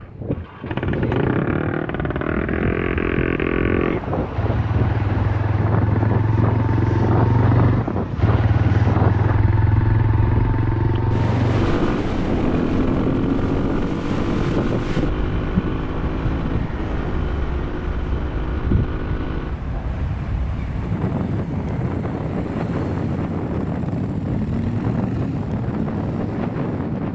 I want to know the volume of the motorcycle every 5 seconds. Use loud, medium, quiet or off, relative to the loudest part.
loud, loud, loud, medium, medium, medium.